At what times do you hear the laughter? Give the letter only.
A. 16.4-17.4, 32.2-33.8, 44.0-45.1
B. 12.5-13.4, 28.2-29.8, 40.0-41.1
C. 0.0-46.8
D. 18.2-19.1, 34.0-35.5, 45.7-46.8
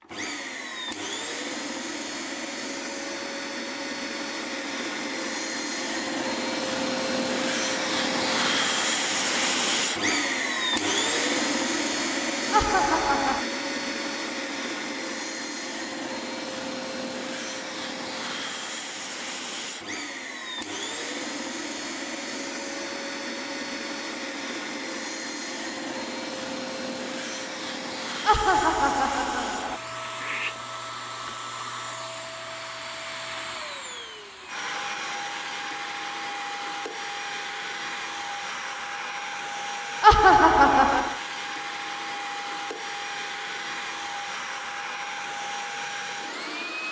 B.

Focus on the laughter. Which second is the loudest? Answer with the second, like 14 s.
40 s.